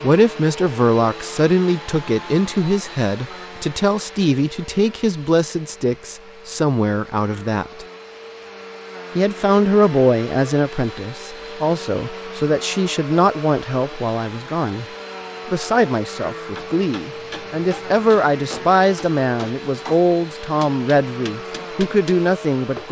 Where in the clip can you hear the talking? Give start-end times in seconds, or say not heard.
0.0-7.8, 9.2-14.8, 15.4-22.8.